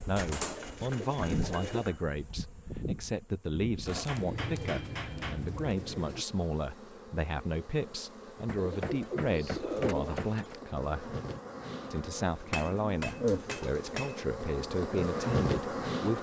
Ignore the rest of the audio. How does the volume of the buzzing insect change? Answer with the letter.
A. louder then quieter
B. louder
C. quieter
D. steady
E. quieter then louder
E.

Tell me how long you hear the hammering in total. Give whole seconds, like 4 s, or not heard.
7 s.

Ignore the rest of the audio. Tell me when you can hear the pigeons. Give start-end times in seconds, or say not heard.
0.1-1.9, 4.2-6.2, 8.6-10.6, 12.2-14.2.